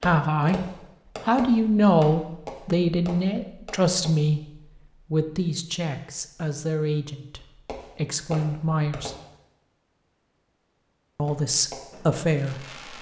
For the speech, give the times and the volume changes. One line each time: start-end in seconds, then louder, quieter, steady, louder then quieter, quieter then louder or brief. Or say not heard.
0.0-0.6 brief
1.2-9.2 quieter
11.2-12.9 brief.